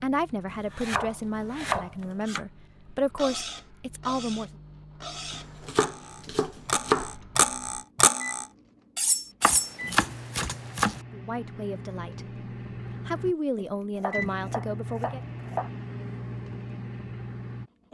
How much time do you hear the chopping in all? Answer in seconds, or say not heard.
7 s.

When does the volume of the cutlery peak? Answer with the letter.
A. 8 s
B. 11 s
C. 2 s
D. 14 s
A.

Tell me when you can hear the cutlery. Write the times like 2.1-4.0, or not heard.
3.1-9.7.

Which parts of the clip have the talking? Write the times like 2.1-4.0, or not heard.
0.0-4.5, 11.1-12.2, 13.1-15.2.